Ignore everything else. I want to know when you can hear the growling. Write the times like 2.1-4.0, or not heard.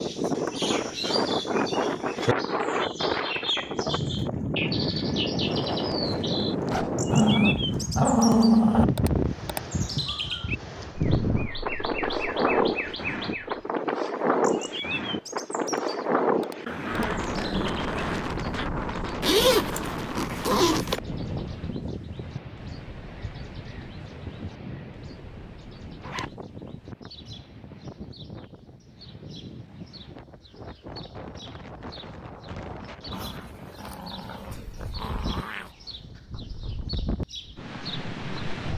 7.1-8.8, 16.6-18.7, 33.1-35.7.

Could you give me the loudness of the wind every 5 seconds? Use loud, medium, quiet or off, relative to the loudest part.
loud, loud, loud, loud, medium, quiet, quiet, medium.